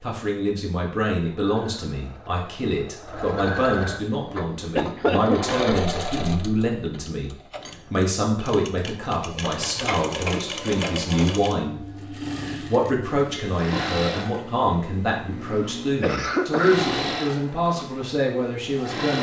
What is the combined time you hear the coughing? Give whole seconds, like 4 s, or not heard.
3 s.